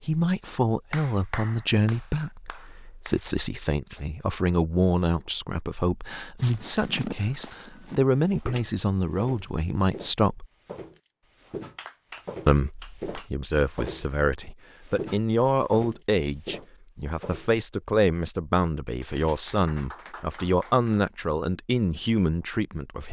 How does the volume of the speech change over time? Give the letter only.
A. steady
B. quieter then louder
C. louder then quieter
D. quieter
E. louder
A.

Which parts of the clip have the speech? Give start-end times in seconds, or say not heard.
0.1-10.4, 12.4-23.0.